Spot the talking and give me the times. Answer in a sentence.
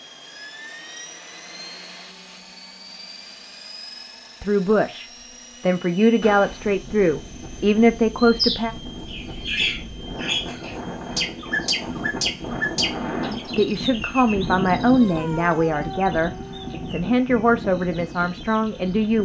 The talking can be heard from 4.4 to 8.8 s and from 13.2 to 19.1 s.